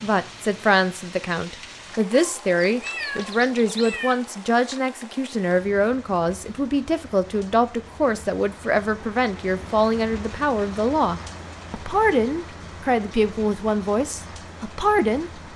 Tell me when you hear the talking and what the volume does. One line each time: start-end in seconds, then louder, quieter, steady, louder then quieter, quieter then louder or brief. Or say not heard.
0.0-15.4 steady.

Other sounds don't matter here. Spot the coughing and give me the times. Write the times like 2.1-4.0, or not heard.
not heard.